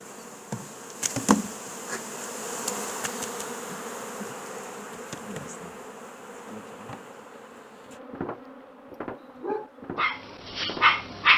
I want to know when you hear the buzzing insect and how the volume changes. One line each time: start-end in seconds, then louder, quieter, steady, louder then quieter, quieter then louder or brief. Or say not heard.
0.0-11.2 quieter.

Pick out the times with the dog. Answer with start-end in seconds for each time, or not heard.
9.2-11.3.